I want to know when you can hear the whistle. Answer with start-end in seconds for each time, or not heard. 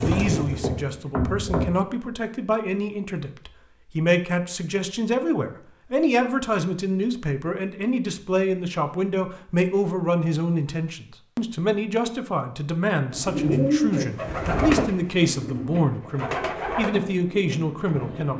not heard.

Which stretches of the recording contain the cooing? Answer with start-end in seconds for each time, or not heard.
0.0-1.7, 13.1-18.3.